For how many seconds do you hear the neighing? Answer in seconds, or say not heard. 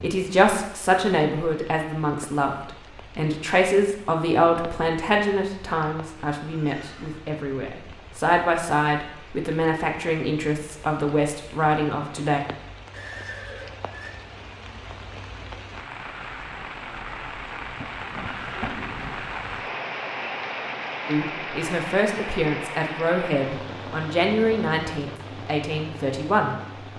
3 s.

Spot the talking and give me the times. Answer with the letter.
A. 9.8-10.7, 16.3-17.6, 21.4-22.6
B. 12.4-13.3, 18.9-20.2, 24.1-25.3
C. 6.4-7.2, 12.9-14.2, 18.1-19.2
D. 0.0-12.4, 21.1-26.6
D.